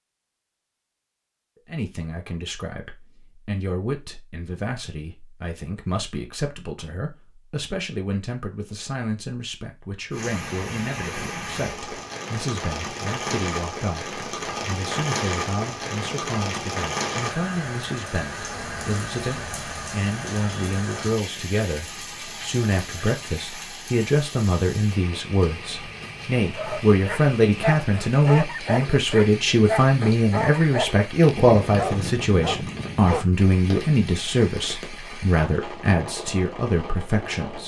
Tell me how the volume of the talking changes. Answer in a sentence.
The volume of the talking goes up.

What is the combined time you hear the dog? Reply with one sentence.
The dog can be heard for 7 seconds in total.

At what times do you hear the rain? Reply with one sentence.
You can hear the rain from 10.1 to 37.6 s.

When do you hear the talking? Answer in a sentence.
The talking can be heard from 1.6 to 37.6 s.